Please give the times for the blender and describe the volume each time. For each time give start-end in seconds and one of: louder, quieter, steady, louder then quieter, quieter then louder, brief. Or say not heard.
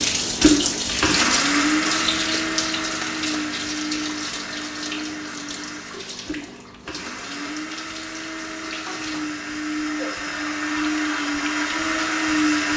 0.0-12.7 quieter then louder.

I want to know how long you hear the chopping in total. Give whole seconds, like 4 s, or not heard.
not heard.